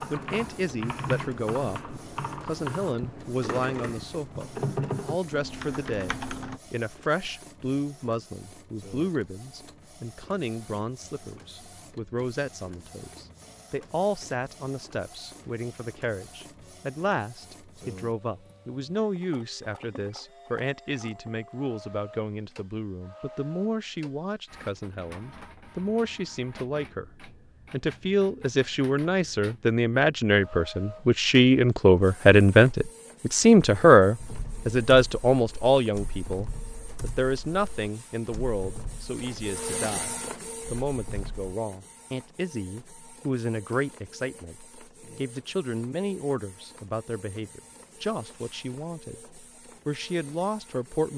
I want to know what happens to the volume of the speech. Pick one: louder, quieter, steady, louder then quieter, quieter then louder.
louder then quieter.